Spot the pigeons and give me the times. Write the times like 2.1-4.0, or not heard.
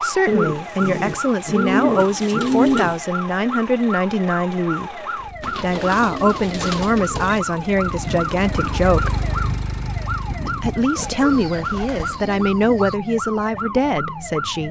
0.2-3.0, 5.4-7.4, 10.9-12.9.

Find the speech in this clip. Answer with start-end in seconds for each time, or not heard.
0.0-9.1, 10.4-14.6.